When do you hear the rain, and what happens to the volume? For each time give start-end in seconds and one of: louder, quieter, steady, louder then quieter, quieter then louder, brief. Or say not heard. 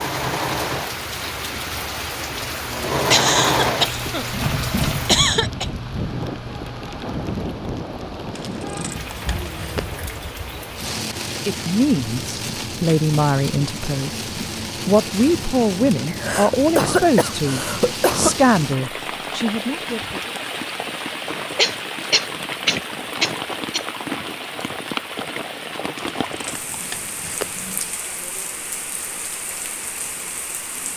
0.0-30.9 steady.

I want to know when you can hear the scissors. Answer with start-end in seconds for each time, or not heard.
8.3-9.9, 25.9-27.9.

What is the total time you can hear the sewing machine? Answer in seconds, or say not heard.
7 s.